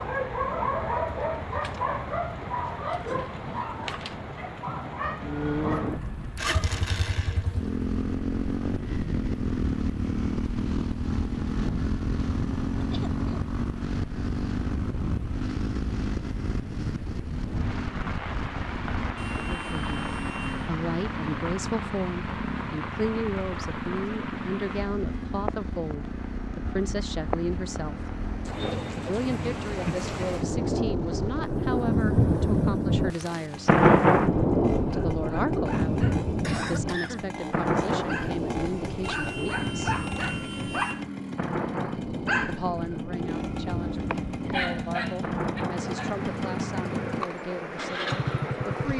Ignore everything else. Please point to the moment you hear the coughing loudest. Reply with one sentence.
The volume of the coughing peaks at 37 seconds.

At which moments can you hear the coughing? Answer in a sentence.
The coughing can be heard from 12.8 to 13.4 s and from 36.4 to 37.2 s.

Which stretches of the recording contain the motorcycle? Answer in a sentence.
The motorcycle can be heard from 5.2 to 48.9 s.